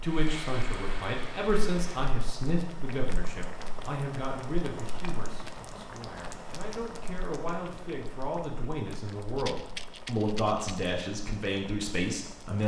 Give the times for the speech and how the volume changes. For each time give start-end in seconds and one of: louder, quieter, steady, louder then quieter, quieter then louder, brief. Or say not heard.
0.0-12.6 quieter then louder.